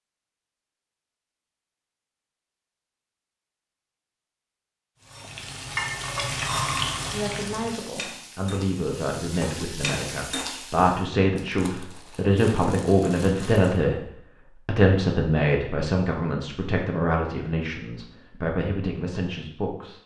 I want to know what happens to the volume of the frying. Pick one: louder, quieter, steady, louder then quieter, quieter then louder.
quieter then louder.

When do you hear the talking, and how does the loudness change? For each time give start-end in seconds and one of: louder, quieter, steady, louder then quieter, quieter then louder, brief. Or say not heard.
7.1-20.0 louder then quieter.